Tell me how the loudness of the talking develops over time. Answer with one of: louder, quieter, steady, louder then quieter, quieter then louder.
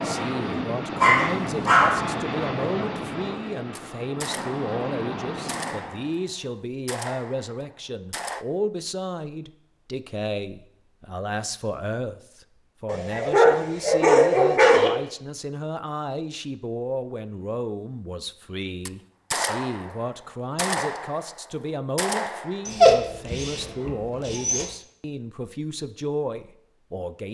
steady.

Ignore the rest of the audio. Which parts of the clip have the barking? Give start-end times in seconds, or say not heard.
1.0-2.0, 12.8-14.9, 22.6-24.6.